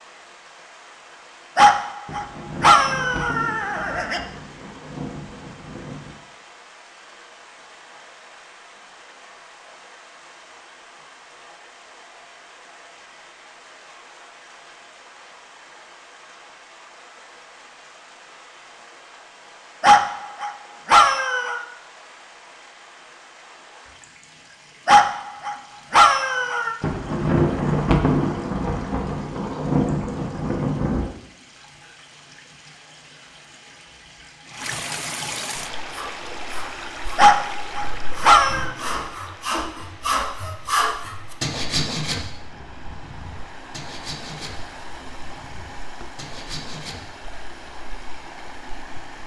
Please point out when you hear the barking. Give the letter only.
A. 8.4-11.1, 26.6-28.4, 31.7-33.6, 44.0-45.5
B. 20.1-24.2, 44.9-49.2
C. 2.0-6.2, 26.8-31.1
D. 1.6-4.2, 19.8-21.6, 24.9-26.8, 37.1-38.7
D.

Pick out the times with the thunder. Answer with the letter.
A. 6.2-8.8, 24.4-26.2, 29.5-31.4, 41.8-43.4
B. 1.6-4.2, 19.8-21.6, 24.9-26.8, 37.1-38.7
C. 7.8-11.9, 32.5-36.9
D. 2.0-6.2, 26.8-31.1
D.